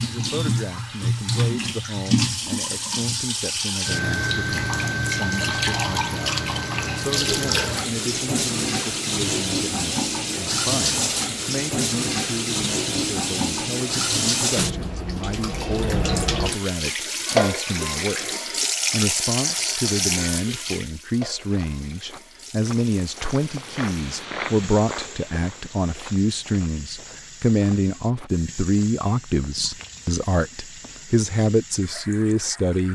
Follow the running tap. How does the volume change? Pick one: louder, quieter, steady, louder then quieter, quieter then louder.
quieter.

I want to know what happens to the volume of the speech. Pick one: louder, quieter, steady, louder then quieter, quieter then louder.
louder.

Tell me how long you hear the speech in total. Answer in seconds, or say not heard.
33 s.